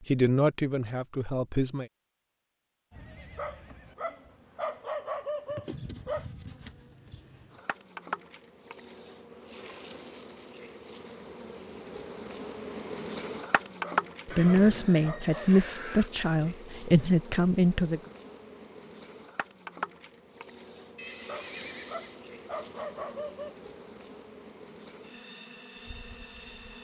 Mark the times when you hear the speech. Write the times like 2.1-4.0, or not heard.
0.1-1.9, 14.2-18.0.